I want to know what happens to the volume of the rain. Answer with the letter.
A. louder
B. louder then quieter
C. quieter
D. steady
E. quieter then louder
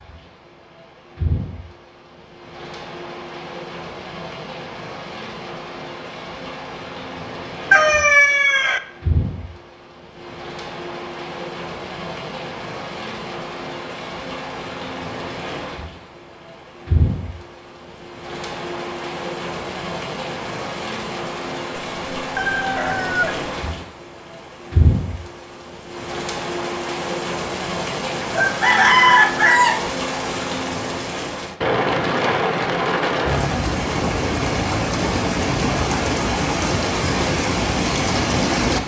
A.